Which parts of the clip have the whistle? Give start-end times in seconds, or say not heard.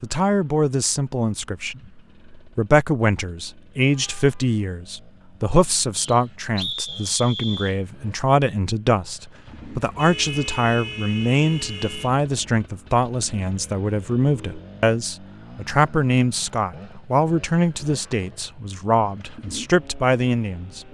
6.0-7.8.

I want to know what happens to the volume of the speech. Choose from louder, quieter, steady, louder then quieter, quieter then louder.
steady.